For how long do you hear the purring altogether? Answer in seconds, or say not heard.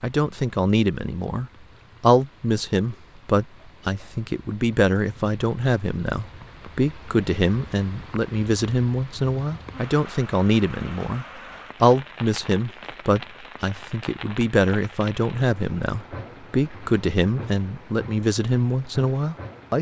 not heard.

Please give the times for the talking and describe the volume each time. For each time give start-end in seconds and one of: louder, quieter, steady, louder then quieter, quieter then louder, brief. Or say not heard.
0.0-19.7 steady.